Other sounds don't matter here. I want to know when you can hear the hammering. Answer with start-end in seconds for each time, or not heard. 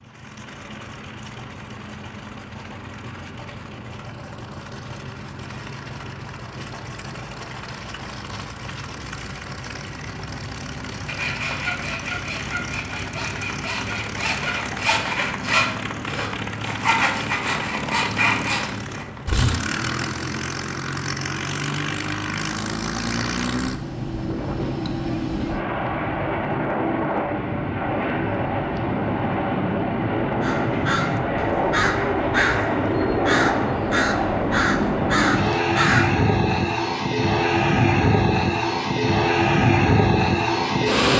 not heard.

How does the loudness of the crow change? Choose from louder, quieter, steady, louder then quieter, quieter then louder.
steady.